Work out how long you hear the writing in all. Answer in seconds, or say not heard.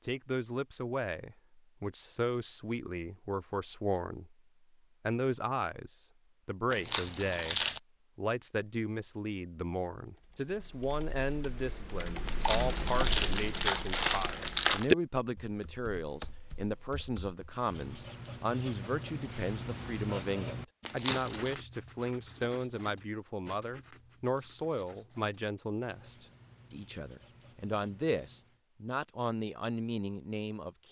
11 s.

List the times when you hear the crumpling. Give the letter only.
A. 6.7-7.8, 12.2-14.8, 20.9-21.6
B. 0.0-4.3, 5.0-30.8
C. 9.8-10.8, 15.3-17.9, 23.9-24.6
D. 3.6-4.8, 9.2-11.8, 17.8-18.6
A.